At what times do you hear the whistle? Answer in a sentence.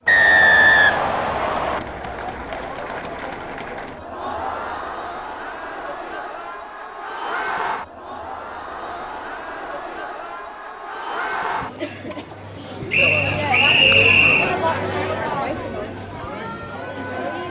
The whistle can be heard from 0.1 to 1.8 s and from 12.9 to 14.6 s.